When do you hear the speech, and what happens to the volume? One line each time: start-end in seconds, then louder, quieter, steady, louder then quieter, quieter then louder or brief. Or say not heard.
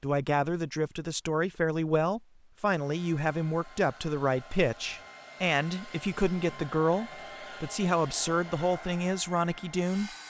0.0-10.1 steady.